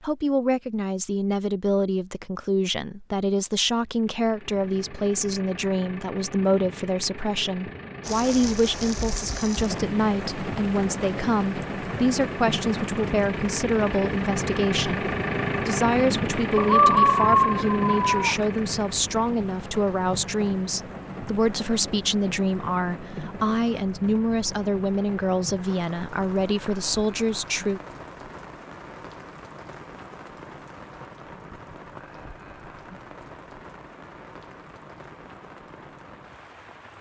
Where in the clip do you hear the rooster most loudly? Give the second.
17 s.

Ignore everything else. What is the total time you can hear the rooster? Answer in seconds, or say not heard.
2 s.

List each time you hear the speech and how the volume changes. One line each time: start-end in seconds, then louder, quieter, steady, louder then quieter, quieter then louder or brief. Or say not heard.
0.0-27.8 steady.